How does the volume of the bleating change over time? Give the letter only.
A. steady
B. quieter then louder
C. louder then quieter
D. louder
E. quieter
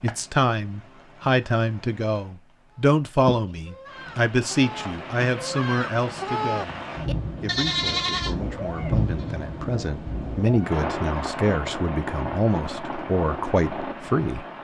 D.